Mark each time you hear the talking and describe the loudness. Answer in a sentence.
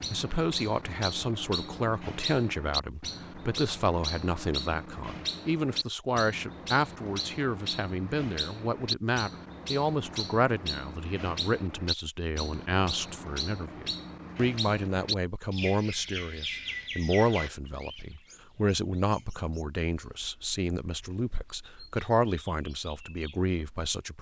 The talking can be heard from 0.1 to 24.1 s, at a steady volume.